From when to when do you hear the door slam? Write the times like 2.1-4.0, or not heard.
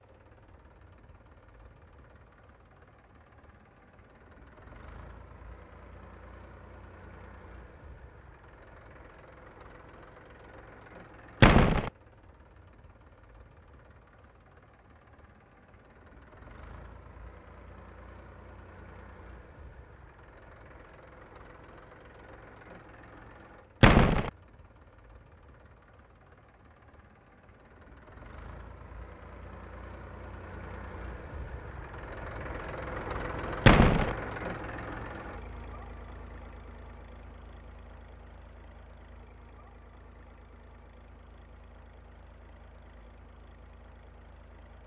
11.4-11.9, 23.8-24.3, 33.6-34.1.